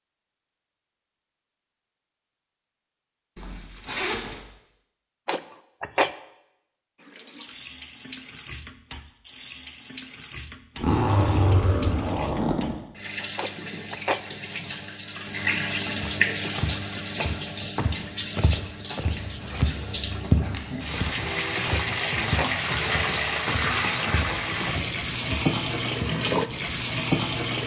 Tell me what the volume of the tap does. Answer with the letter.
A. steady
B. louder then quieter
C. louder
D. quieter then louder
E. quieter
C.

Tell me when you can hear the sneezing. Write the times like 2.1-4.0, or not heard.
5.2-6.1, 13.3-14.7, 21.6-22.5.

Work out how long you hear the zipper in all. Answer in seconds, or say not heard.
5 s.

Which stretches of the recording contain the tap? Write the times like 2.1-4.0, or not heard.
7.0-27.6.